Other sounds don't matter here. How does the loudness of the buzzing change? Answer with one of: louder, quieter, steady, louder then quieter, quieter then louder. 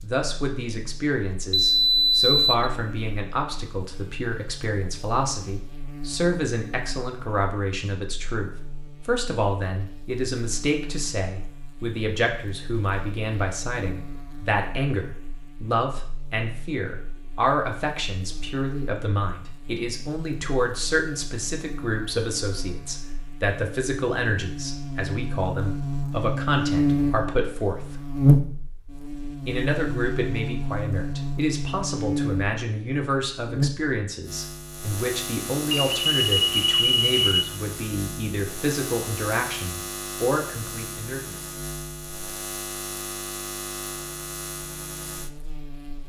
louder then quieter.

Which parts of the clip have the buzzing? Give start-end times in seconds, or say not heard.
0.0-46.0.